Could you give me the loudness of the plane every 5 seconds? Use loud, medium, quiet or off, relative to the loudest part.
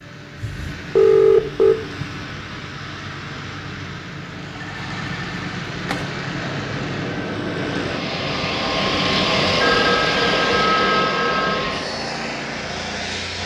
medium, loud, loud.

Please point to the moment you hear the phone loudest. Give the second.
1 s.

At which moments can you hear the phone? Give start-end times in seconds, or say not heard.
0.4-2.2, 4.6-6.1, 9.6-11.7.